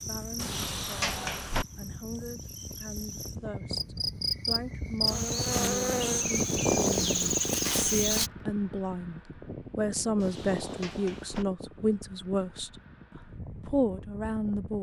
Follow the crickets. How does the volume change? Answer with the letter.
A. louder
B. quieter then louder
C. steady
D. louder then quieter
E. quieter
A.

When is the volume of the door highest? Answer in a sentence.
The loudest moment of the door is at 1 second.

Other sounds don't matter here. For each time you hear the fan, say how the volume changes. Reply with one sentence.
You can hear the fan from 0.0 to 14.7 s, getting louder then quieter.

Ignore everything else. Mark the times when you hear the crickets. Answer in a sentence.
You can hear the crickets from 0.0 to 8.3 s.